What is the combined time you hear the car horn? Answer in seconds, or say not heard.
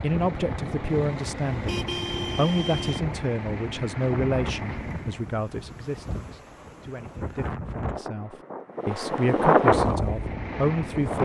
2 s.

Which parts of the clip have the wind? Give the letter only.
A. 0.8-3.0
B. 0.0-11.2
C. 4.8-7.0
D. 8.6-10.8
B.